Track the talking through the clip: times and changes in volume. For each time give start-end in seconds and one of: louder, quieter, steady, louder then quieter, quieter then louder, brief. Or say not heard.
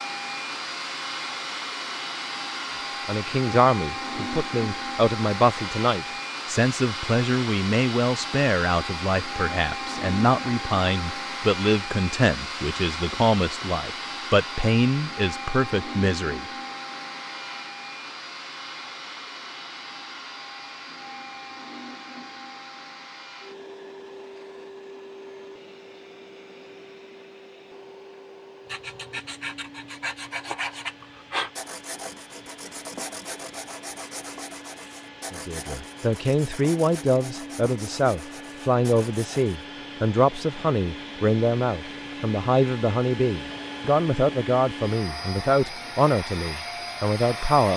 3.0-16.4 steady
35.3-47.7 steady.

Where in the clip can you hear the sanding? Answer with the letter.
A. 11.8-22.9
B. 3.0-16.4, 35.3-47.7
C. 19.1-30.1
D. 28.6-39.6
D.